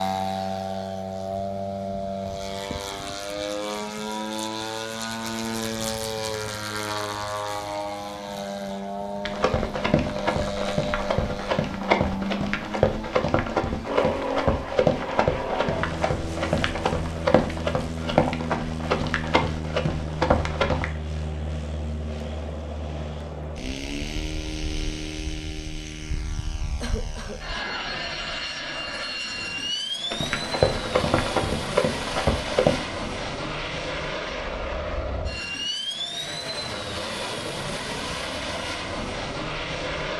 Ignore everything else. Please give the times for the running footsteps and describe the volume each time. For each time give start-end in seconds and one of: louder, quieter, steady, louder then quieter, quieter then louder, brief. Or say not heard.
9.2-20.9 steady
30.1-32.9 brief.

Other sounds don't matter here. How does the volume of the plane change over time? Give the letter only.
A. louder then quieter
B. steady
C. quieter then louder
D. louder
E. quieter
B.